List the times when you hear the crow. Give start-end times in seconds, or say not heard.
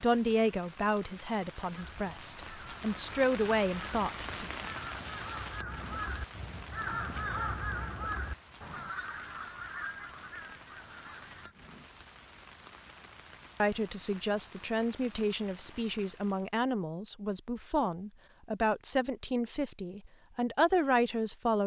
1.8-11.6.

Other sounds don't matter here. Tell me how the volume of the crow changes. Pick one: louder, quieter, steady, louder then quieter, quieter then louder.
louder then quieter.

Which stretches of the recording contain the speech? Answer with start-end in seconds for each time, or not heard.
0.0-4.5, 13.6-21.6.